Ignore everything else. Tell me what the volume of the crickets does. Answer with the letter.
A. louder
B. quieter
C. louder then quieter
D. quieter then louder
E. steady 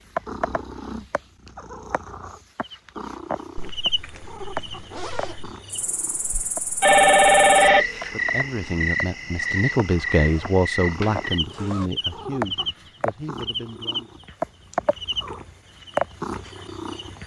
C.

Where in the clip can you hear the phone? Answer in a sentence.
You can hear the phone from 6.3 to 8.1 s.